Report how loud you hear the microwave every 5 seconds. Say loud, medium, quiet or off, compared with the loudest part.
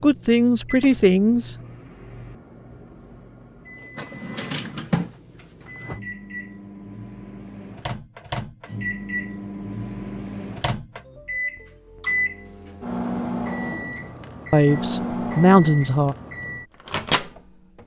quiet, medium, loud, loud.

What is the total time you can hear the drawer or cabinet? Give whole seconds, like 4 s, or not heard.
2 s.